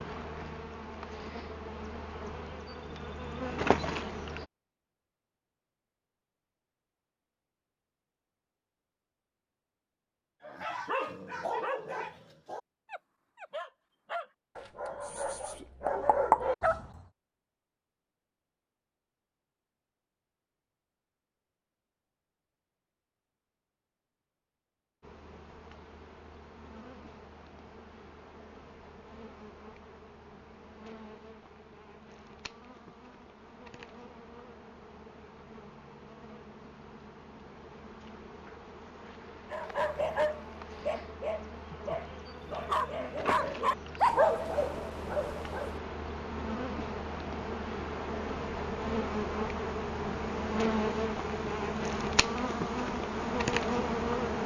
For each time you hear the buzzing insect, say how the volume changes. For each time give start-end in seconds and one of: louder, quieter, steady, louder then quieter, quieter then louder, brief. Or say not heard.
0.0-4.5 louder
25.0-54.4 louder.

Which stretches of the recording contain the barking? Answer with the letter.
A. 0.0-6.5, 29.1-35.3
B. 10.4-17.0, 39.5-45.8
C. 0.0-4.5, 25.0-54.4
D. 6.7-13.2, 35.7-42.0
B.